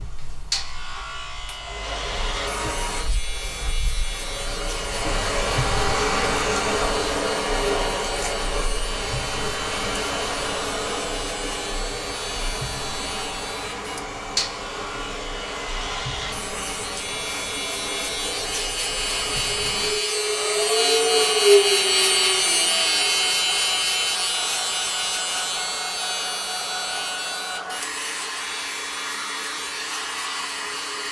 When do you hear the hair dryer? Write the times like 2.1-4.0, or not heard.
0.0-31.0.